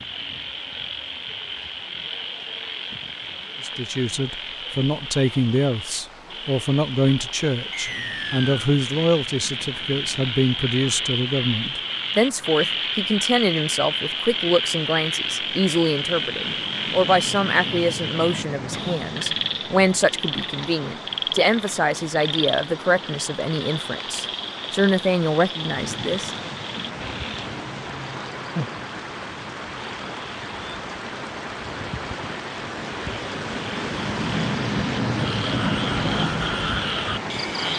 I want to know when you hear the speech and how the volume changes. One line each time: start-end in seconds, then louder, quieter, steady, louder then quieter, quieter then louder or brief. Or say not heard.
3.6-26.5 steady.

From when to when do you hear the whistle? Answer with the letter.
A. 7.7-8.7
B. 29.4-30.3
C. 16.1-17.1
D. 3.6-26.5
A.